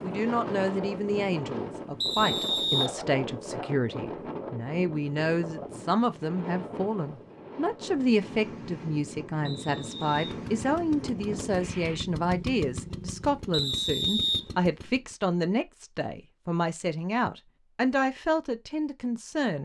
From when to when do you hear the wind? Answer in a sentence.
You can hear the wind from 0.0 to 12.0 s.